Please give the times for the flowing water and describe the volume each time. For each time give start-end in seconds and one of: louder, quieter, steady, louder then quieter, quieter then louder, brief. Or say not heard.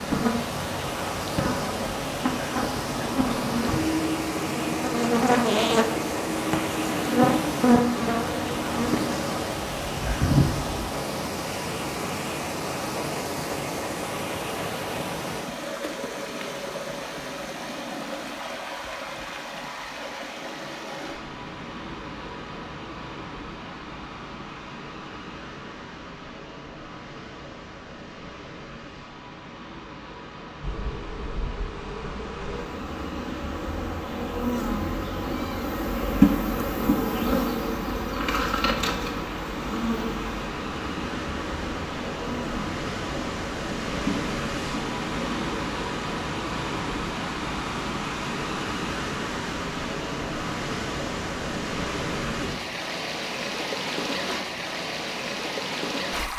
0.0-56.3 quieter then louder.